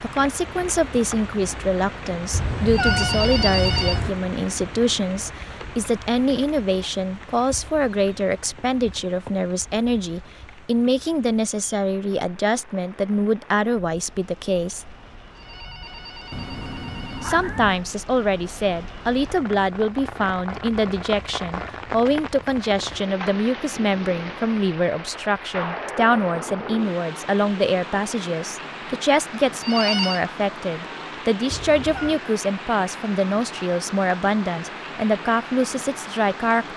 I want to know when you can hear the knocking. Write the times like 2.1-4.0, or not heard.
not heard.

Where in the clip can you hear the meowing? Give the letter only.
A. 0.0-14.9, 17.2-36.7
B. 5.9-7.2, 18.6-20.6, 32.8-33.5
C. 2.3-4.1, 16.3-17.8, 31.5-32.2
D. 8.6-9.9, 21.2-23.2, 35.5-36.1
C.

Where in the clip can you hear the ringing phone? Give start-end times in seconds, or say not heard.
2.7-4.0, 15.3-17.4, 29.6-30.2.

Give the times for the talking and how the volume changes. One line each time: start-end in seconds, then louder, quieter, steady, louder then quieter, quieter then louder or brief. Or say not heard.
0.0-14.9 steady
17.2-36.7 steady.